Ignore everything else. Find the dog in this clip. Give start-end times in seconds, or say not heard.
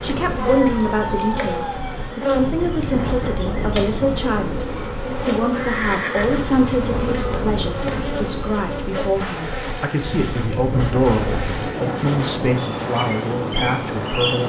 0.4-2.2.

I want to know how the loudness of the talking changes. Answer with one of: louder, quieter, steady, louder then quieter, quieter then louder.
steady.